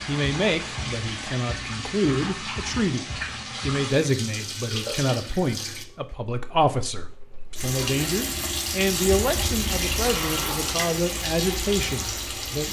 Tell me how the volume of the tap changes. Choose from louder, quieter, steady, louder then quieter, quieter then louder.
quieter then louder.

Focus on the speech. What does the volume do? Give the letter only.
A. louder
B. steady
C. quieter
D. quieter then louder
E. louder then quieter
B.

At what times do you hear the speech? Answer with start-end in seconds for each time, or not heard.
0.1-12.6.